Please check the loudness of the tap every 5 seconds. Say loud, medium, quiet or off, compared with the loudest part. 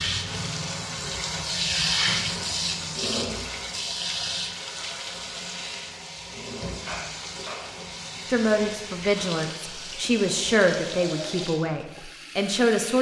loud, medium, medium.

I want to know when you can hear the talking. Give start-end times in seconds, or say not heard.
8.2-12.9.